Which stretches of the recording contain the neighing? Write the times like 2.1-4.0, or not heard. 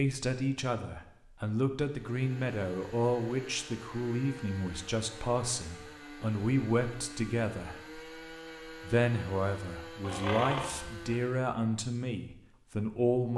10.0-11.2.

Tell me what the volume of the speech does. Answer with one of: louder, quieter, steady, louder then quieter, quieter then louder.
steady.